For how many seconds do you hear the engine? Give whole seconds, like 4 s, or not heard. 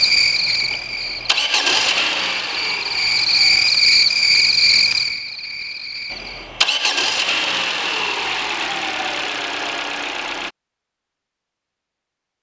8 s.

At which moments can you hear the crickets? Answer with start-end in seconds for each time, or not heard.
0.0-6.5.